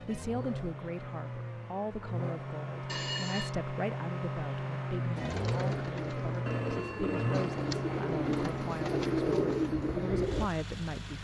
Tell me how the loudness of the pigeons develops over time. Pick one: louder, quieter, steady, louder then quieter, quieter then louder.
louder.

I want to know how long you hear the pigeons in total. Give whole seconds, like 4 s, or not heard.
5 s.